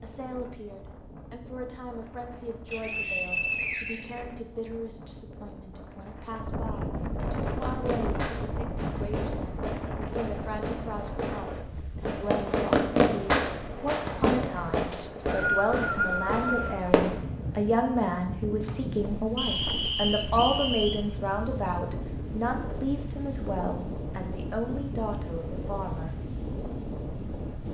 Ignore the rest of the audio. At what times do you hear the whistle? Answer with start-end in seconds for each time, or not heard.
2.7-4.7, 14.9-16.8, 19.4-21.1.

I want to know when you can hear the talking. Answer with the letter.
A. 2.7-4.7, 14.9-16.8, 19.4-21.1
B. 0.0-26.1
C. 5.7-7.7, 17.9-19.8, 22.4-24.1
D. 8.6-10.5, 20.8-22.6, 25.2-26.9
B.